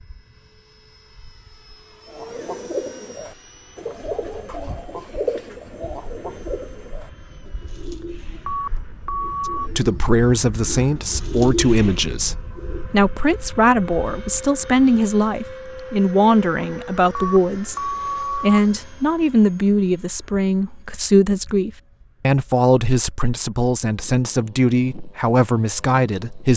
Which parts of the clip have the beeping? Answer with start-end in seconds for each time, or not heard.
8.4-9.7, 17.1-18.6.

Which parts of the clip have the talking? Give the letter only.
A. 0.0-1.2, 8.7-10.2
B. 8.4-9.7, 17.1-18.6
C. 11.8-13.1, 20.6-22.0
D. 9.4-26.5
D.